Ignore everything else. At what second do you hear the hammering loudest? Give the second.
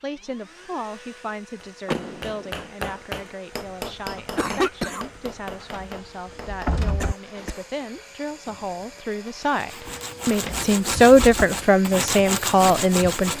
3 s.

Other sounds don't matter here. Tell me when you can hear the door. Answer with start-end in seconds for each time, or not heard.
1.9-2.6, 5.2-7.2, 9.8-11.4.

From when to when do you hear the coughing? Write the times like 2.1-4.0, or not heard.
4.2-5.0, 7.0-7.7.